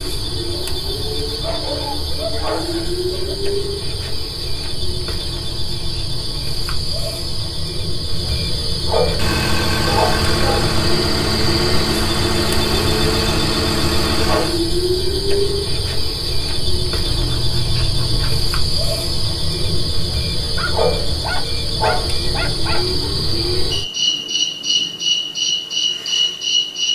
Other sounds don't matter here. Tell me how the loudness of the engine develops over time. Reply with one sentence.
The loudness of the engine stays about the same.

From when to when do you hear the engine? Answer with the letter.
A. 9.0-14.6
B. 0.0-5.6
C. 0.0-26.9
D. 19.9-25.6
A.